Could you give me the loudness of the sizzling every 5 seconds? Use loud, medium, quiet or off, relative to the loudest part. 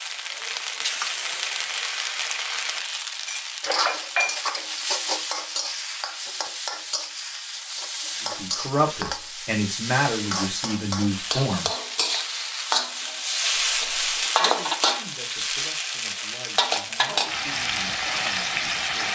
loud, medium, loud, loud.